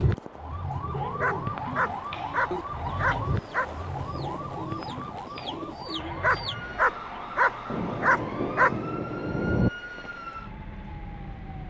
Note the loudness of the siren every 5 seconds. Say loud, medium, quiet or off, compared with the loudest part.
loud, medium, medium.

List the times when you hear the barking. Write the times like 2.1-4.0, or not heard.
0.9-3.6, 6.0-8.8.